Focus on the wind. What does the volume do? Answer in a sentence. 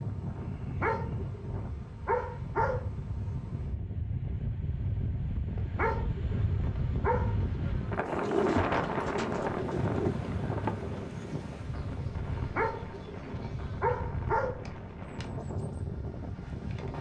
The loudness of the wind goes up, then down.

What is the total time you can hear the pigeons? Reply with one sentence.
You can hear the pigeons for 2 seconds altogether.